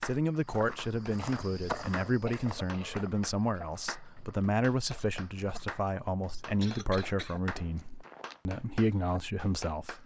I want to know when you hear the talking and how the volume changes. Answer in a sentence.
You can hear the talking from 0.0 to 10.0 s, at a steady volume.